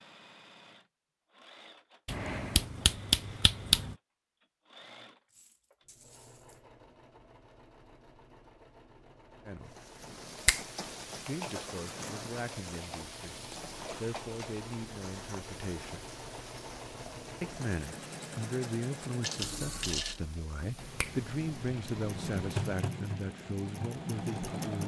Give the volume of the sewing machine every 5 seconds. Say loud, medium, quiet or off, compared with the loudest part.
quiet, quiet, quiet, medium, loud.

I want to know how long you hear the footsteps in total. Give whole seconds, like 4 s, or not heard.
not heard.